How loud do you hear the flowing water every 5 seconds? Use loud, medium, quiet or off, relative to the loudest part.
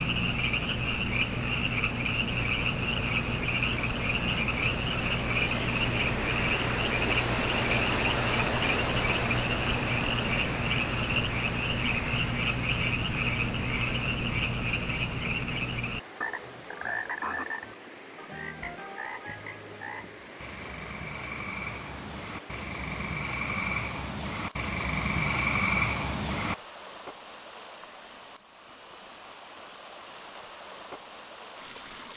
medium, loud, medium, quiet, quiet, quiet, quiet.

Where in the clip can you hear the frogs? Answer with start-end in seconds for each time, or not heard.
0.0-26.6.